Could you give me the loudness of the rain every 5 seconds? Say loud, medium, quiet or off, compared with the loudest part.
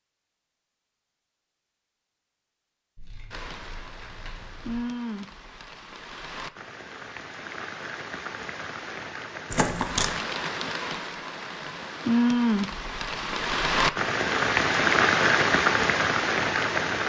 quiet, quiet, loud, loud.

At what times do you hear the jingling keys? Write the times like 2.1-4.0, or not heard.
3.0-4.8, 9.5-10.1.